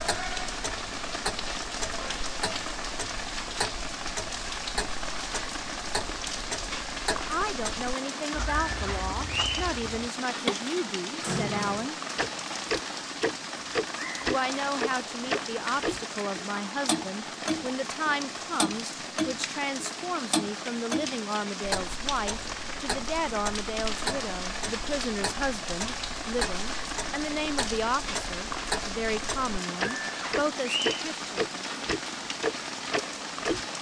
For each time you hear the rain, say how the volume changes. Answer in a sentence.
You can hear the rain from 0.0 to 33.7 s, at a steady volume.